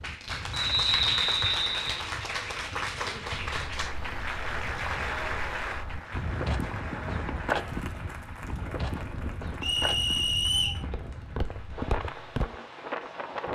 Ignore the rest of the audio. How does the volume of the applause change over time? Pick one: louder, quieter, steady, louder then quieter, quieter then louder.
quieter.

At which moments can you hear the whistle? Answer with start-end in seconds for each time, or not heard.
0.5-2.0, 9.6-10.8.